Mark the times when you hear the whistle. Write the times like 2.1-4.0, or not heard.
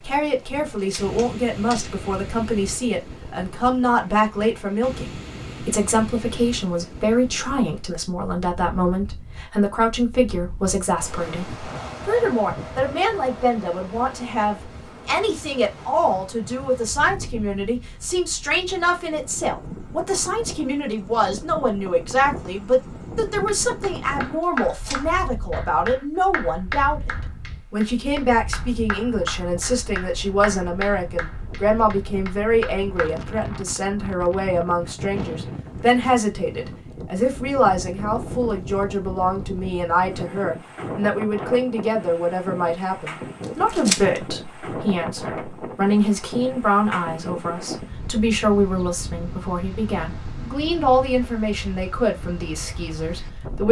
not heard.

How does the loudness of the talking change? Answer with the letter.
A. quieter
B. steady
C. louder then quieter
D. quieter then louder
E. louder
B.